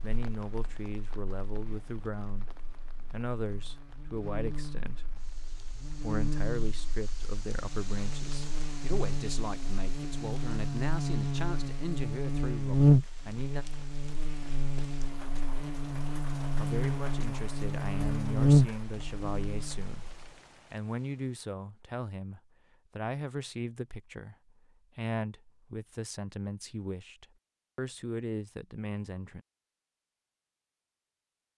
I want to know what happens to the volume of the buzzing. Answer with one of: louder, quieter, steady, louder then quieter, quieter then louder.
louder.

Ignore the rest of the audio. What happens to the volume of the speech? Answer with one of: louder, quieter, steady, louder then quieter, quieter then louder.
steady.